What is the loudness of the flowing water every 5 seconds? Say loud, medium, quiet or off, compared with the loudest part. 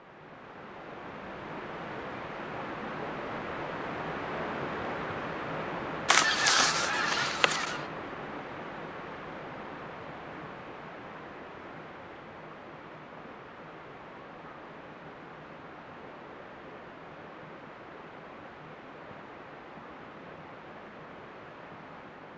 loud, loud, medium, medium, medium.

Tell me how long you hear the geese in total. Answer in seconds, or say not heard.
2 s.